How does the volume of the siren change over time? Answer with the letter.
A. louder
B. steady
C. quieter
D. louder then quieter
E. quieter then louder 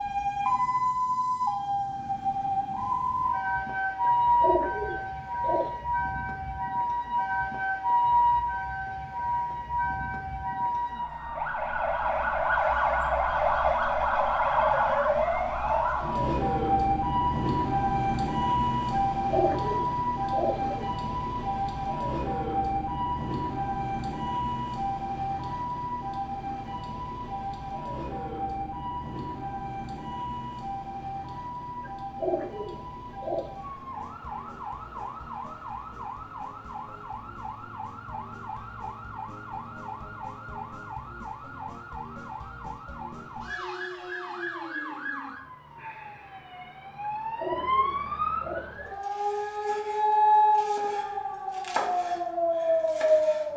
E.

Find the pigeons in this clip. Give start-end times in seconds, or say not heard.
4.0-5.8, 18.9-20.9, 31.9-33.5, 47.0-49.0.